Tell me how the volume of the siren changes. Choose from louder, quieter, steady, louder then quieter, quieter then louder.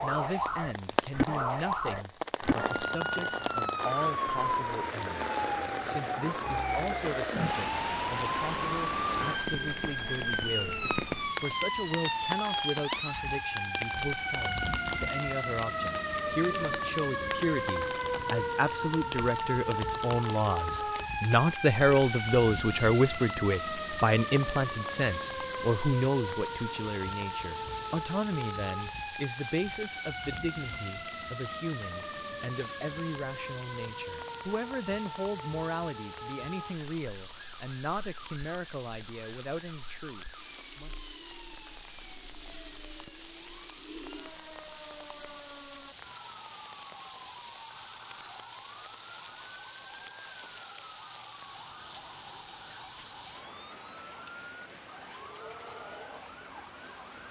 quieter.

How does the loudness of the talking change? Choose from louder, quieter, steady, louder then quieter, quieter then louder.
louder then quieter.